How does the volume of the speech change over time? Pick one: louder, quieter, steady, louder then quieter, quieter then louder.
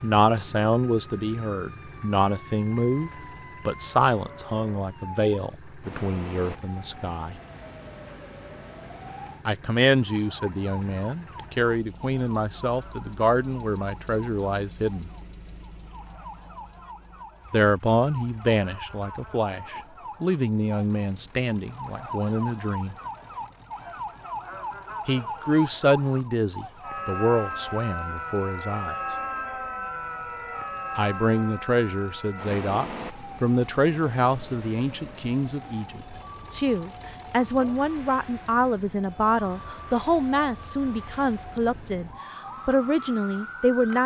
steady.